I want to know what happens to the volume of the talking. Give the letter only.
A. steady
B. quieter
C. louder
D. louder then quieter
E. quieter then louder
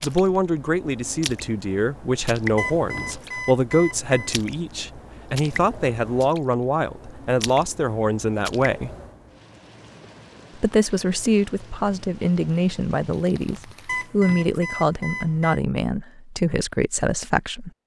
A.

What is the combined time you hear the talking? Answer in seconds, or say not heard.
16 s.